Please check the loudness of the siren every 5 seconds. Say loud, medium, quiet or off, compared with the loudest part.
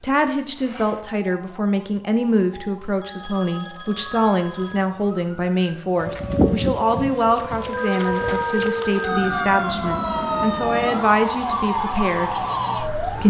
quiet, loud, loud.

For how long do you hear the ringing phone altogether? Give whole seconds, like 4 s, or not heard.
4 s.